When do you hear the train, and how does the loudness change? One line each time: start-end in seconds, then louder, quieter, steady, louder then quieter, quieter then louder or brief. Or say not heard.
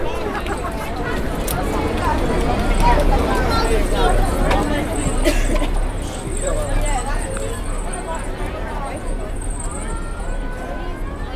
0.2-11.3 quieter.